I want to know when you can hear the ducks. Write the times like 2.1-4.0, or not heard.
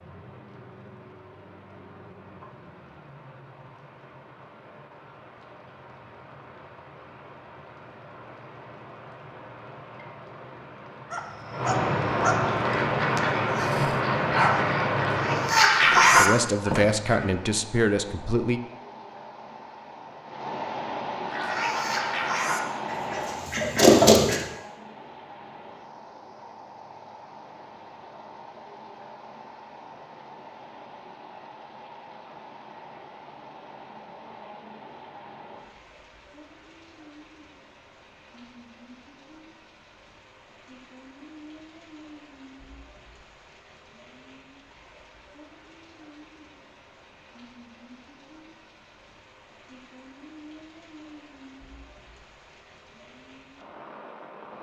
12.6-17.2, 21.2-24.4.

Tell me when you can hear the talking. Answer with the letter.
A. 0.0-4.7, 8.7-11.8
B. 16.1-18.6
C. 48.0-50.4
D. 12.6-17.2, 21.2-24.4
B.